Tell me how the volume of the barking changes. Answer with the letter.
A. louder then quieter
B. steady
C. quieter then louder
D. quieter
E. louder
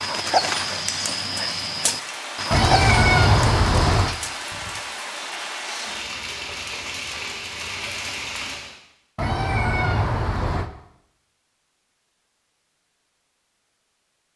D.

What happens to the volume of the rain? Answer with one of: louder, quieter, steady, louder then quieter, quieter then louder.
steady.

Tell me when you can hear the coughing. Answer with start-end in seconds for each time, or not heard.
not heard.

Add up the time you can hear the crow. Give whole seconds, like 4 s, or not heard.
not heard.